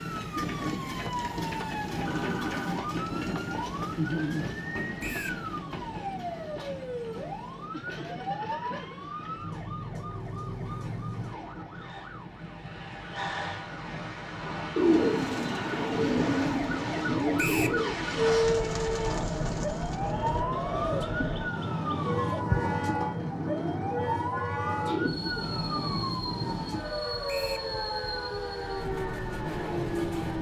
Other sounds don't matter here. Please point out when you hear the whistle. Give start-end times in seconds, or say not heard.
5.0-5.4, 17.4-17.8, 27.2-27.7.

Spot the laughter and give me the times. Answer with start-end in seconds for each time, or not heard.
7.7-9.1.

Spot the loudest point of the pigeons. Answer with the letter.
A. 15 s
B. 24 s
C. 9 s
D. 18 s
A.